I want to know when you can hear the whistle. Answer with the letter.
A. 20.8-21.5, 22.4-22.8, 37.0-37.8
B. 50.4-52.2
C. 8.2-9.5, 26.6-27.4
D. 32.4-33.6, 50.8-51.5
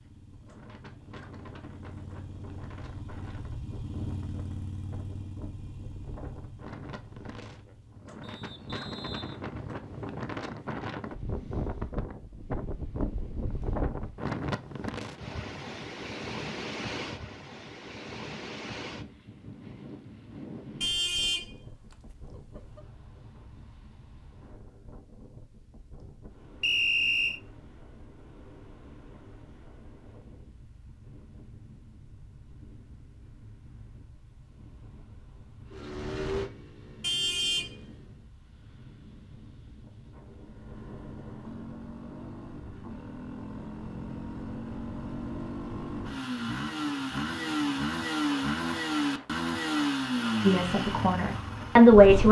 C.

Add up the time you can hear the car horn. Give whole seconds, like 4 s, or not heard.
2 s.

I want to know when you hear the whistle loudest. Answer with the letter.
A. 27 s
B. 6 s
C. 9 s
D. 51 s
A.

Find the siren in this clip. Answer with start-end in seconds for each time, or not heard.
not heard.